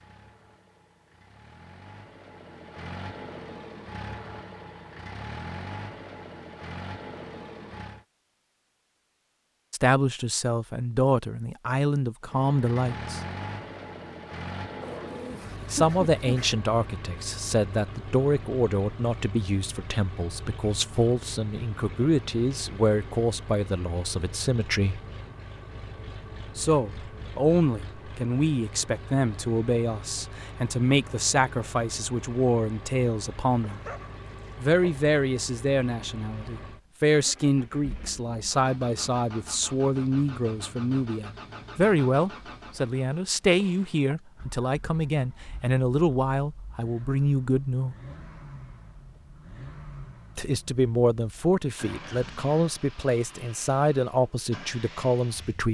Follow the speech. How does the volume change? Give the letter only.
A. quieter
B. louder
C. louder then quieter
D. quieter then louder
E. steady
E.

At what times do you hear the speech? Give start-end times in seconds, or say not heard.
9.7-13.2, 15.7-25.0, 26.6-33.8, 34.6-48.0, 50.4-55.6.